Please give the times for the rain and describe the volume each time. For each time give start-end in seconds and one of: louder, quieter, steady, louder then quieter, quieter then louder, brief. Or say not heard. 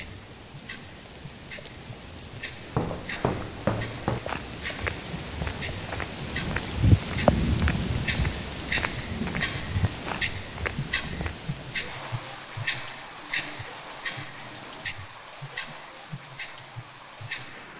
0.0-17.7 louder then quieter.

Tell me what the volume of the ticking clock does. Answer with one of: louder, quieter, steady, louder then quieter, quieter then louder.
louder then quieter.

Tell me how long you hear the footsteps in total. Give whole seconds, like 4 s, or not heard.
9 s.